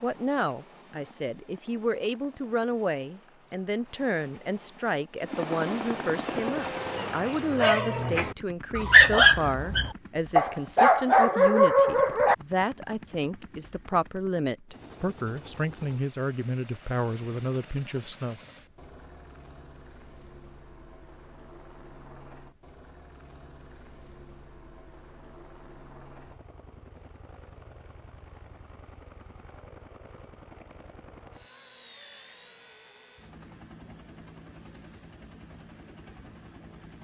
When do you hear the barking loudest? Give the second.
9 s.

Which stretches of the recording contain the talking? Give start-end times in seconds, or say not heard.
0.0-18.4.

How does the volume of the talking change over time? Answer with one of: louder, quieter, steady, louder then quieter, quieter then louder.
steady.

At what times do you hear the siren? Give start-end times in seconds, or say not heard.
not heard.